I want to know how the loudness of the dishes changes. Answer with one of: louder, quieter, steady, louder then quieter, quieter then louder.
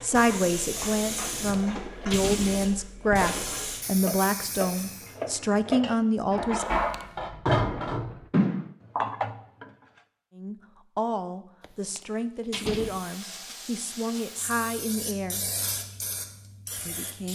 louder.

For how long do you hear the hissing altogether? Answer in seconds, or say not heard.
10 s.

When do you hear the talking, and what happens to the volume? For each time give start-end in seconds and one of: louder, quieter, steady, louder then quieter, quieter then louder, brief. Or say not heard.
0.0-6.8 steady
10.3-15.5 steady
16.9-17.3 brief.